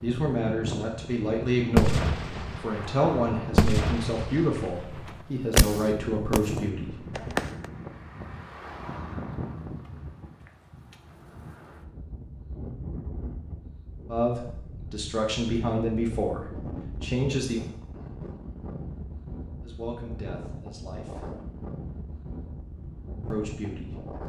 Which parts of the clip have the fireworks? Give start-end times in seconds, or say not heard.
1.8-7.7.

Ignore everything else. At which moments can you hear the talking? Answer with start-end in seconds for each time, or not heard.
0.0-7.2, 14.1-17.6, 19.6-21.3, 23.3-24.2.